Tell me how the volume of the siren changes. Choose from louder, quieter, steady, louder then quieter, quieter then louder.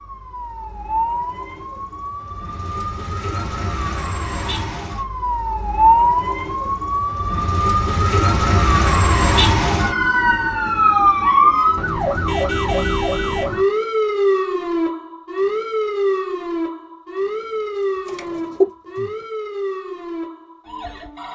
louder then quieter.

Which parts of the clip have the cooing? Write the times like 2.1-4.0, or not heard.
17.6-19.2.